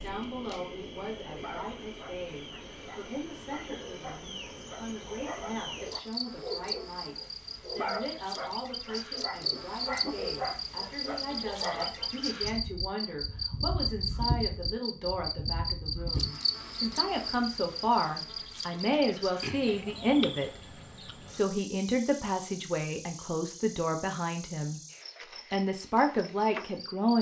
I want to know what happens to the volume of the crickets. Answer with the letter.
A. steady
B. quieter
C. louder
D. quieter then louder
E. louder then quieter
E.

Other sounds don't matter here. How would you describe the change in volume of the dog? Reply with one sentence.
The loudness of the dog goes up.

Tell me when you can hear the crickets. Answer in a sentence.
You can hear the crickets from 0.0 to 27.1 s.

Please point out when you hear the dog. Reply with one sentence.
The dog can be heard from 1.2 to 12.1 s.